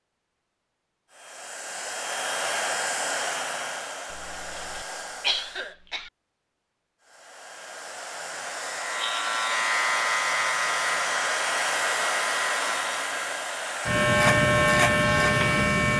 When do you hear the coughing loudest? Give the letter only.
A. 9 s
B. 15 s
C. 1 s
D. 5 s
D.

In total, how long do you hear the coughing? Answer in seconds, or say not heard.
2 s.